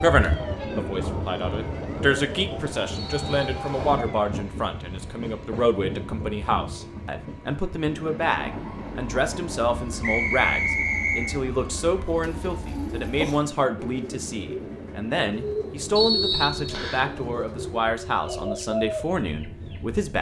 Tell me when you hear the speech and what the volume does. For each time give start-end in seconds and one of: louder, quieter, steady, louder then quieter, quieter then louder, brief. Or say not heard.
0.0-20.1 steady.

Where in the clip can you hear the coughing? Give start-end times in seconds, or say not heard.
not heard.